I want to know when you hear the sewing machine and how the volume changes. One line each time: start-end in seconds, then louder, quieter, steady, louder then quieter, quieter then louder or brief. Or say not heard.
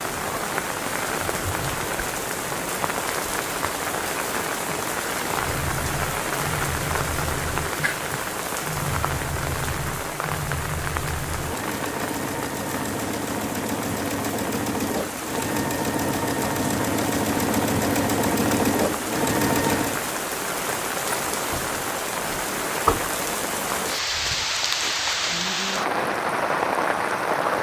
5.2-20.0 louder.